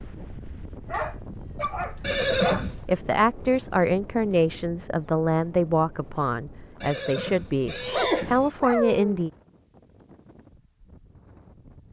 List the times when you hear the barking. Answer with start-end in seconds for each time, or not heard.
0.8-2.7, 7.8-9.2.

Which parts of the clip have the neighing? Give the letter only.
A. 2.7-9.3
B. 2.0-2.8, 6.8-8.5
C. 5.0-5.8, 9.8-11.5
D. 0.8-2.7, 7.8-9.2
B.